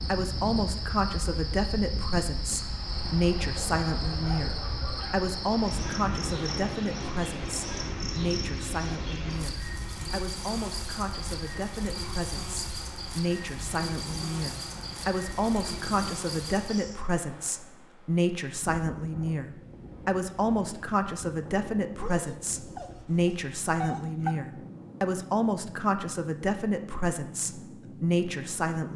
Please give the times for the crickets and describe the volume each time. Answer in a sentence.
The crickets can be heard from 0.0 to 17.0 s, at a steady volume.